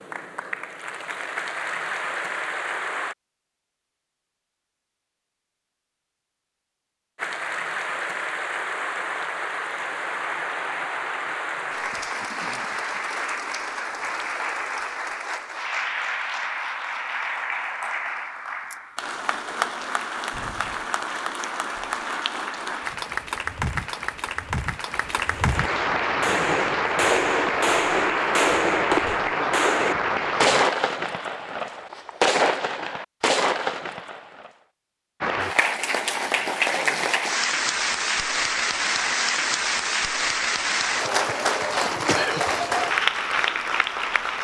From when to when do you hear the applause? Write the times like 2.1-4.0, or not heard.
0.0-3.1, 7.2-30.6, 35.2-44.3.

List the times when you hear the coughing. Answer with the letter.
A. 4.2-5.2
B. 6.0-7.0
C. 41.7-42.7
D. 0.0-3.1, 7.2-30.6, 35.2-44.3
C.